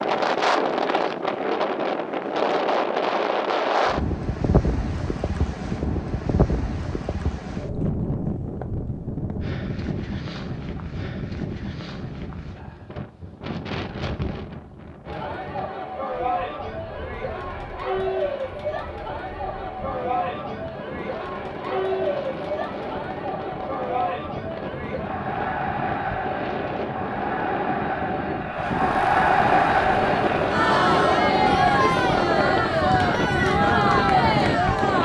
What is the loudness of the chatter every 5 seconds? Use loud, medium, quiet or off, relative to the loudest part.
off, off, off, medium, medium, loud, loud.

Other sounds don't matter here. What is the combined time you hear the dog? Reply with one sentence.
The dog can't be heard in this clip.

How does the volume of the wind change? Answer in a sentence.
The loudness of the wind goes down, then up.